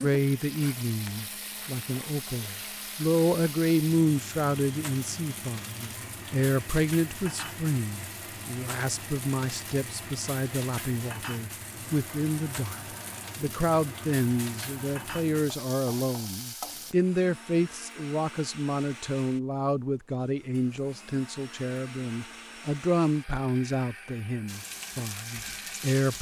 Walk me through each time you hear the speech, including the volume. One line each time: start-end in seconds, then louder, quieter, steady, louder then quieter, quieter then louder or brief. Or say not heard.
0.0-26.1 steady.